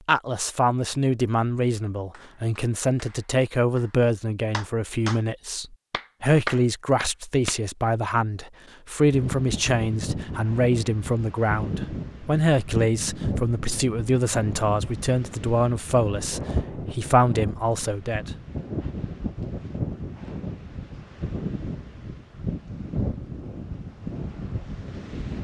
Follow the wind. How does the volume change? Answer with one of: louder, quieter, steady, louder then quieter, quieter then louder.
steady.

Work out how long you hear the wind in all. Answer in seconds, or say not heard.
16 s.